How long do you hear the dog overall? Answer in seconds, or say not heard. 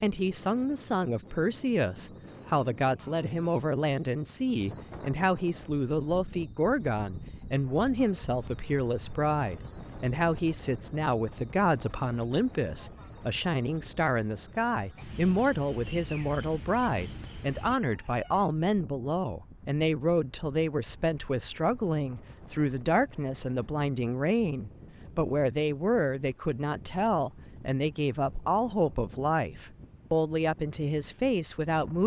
not heard.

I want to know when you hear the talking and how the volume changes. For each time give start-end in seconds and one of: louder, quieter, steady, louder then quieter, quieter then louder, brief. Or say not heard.
0.0-32.0 steady.